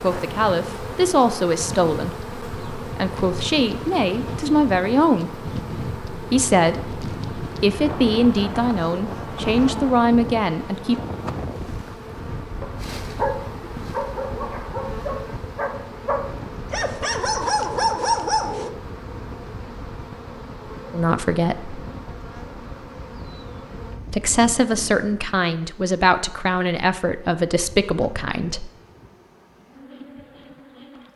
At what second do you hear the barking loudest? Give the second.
18 s.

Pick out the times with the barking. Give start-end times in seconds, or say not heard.
12.1-18.7.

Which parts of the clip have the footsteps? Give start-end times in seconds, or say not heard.
not heard.